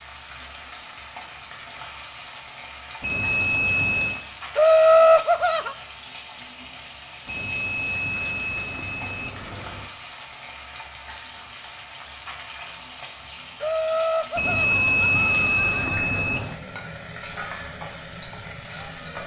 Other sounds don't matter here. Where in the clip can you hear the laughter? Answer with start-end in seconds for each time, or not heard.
4.5-5.8, 13.6-16.1.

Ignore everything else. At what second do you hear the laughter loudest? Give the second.
5 s.